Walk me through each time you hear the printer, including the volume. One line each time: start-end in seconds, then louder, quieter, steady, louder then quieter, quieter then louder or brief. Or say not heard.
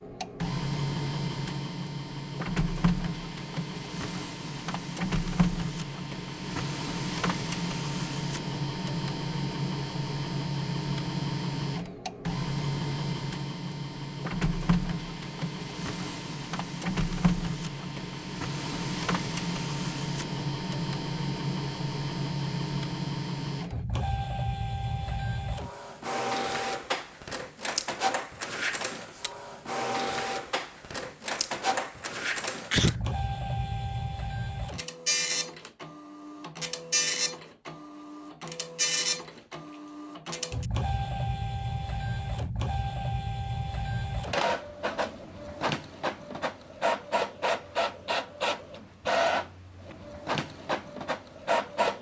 0.0-51.9 steady.